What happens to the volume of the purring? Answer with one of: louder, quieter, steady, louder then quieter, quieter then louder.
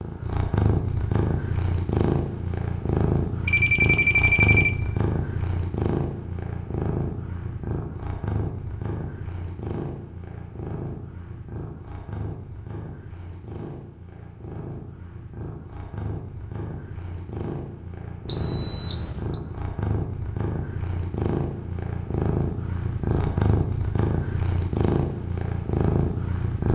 quieter then louder.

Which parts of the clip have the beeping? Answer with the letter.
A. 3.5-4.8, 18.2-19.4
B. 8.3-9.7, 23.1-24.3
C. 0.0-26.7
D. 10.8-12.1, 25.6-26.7
A.